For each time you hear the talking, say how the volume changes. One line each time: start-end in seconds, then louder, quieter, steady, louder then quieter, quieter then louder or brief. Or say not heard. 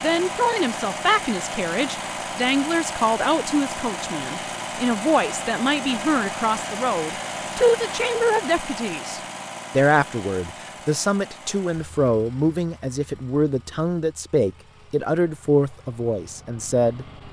0.0-17.1 steady.